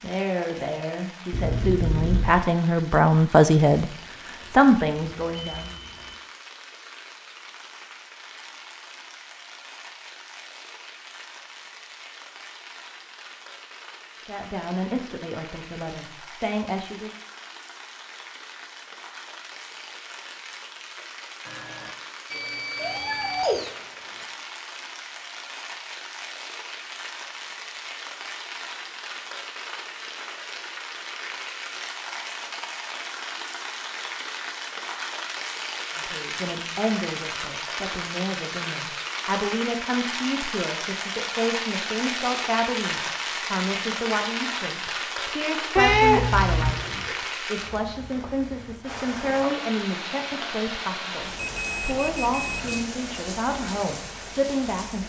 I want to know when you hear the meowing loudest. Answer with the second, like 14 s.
46 s.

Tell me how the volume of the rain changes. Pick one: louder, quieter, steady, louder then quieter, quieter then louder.
louder.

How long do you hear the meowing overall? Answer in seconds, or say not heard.
4 s.